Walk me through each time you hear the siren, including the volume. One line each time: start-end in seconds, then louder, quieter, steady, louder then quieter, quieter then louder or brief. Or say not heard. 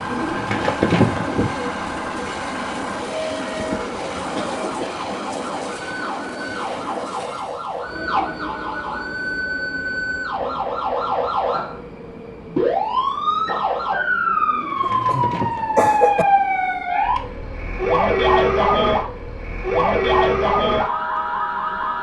0.0-21.9 louder.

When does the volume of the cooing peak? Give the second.
1 s.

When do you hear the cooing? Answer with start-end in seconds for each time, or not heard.
0.1-1.7, 14.5-16.1.